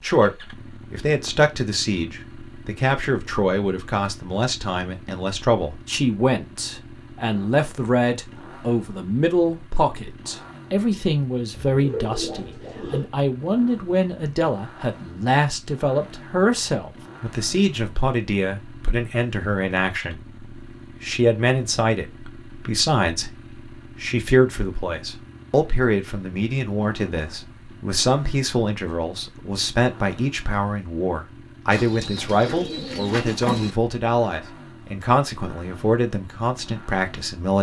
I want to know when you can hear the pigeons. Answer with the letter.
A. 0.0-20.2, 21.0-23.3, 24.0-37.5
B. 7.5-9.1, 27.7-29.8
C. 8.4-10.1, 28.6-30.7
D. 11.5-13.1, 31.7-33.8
D.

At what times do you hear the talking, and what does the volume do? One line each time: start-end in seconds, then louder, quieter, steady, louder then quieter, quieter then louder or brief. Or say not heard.
0.0-20.2 steady
21.0-23.3 brief
24.0-37.5 steady.